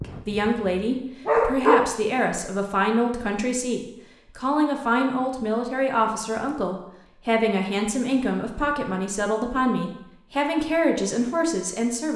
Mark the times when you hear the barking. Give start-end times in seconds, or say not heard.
0.0-1.9.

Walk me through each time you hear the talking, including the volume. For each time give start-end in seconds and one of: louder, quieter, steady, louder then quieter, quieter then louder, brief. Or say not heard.
0.0-12.1 steady.